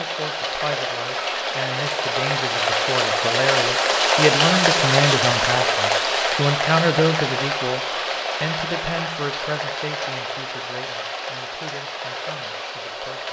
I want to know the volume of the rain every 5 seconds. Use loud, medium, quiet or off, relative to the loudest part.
loud, loud, medium.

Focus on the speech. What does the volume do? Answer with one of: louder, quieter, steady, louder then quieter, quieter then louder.
louder then quieter.